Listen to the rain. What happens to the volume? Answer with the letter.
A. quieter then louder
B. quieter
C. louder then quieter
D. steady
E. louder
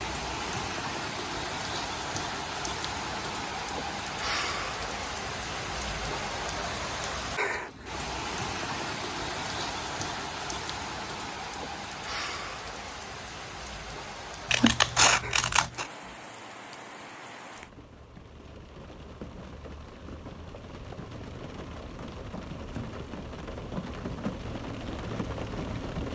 A.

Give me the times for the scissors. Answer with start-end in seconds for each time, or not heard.
14.5-15.8.